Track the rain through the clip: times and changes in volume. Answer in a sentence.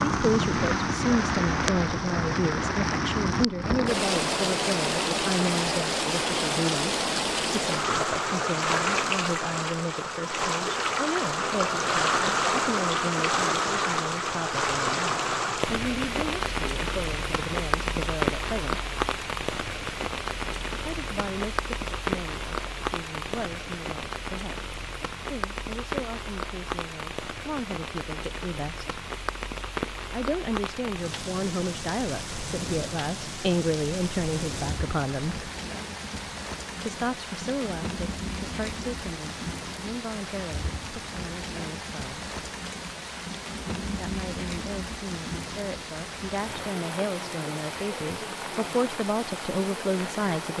The rain can be heard from 0.0 to 50.5 s, getting quieter.